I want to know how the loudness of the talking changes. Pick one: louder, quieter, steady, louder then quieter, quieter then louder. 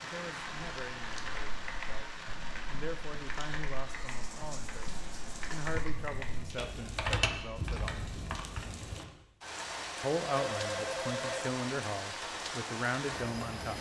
louder.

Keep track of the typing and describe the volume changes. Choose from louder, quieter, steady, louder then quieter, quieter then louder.
louder.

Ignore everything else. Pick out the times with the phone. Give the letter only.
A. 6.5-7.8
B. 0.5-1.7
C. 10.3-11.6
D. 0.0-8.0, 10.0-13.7
C.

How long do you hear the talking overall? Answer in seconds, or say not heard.
12 s.